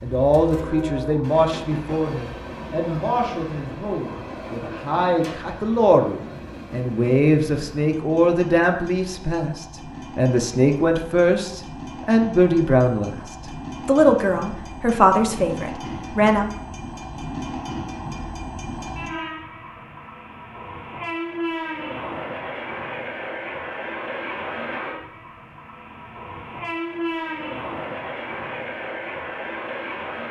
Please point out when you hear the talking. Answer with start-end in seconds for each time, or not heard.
0.0-16.4.